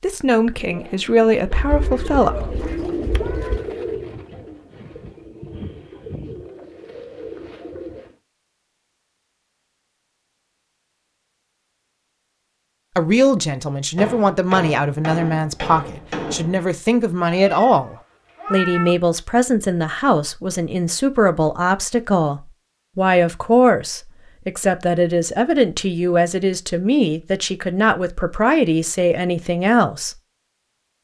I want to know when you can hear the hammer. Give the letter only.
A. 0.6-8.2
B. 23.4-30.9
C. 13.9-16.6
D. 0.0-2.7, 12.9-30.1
C.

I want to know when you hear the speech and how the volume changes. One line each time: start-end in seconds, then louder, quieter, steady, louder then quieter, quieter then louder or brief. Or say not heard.
0.0-2.7 brief
12.9-30.1 steady.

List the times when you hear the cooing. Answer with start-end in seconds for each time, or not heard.
0.6-8.2.